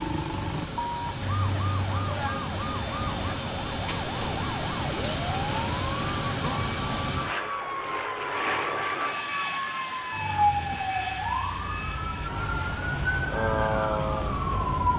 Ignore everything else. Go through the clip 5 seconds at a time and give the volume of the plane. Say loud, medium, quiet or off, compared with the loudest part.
loud, loud, medium.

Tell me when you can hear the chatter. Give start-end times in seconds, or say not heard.
not heard.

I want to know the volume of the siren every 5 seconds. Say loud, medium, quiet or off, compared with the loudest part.
medium, medium, loud.